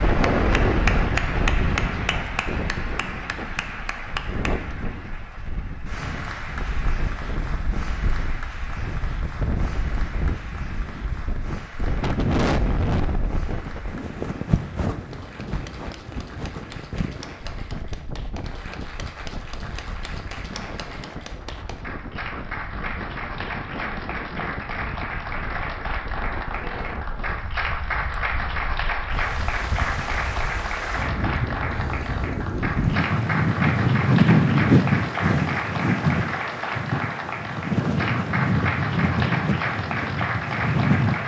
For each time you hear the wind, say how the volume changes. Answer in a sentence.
You can hear the wind from 0.0 to 41.2 s, getting quieter then louder.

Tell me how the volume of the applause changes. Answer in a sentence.
The volume of the applause goes down, then up.